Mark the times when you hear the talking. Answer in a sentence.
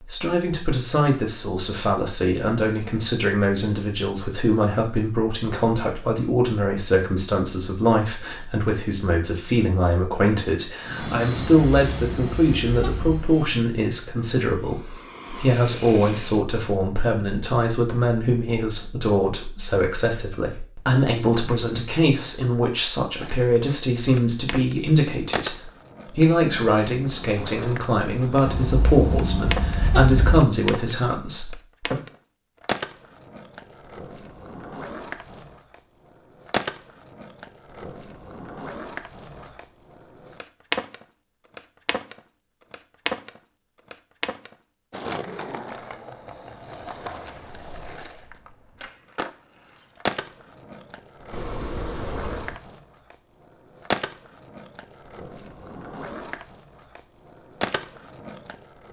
The talking can be heard from 0.1 to 32.0 s.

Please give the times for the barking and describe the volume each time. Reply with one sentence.
The barking can't be heard in this clip.